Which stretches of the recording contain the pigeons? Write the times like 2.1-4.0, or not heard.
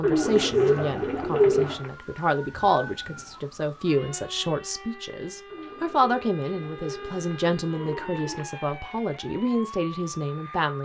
0.0-1.9, 5.5-8.5.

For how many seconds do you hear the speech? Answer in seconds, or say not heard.
11 s.